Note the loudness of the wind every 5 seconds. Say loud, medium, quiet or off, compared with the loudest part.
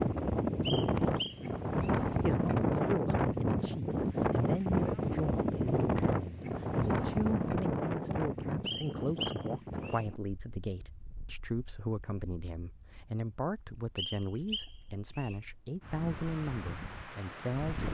loud, loud, quiet, quiet.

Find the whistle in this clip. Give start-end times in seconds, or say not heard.
0.6-1.9, 8.7-10.1, 13.9-15.3.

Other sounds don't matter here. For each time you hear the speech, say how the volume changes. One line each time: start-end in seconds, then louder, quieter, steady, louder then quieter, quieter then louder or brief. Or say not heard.
2.2-17.9 steady.